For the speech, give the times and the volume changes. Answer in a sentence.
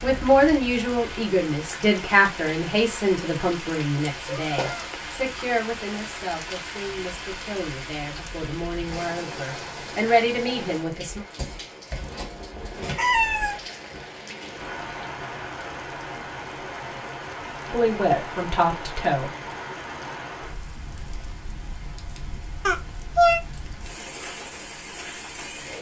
The speech can be heard from 0.0 to 11.2 s, getting quieter then louder; and briefly from 17.7 to 19.3 s.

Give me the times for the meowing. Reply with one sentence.
You can hear the meowing from 4.2 to 5.0 s, from 12.9 to 13.6 s and from 22.6 to 23.4 s.